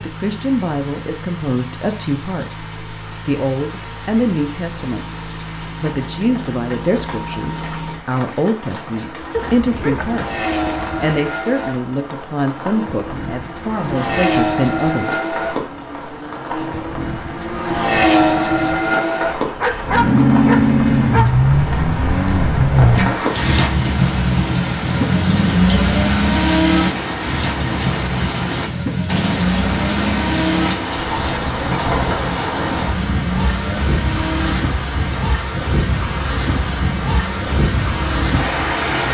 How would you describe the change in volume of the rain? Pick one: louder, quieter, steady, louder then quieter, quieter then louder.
louder.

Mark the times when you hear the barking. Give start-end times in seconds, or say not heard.
9.3-10.9, 19.6-21.4.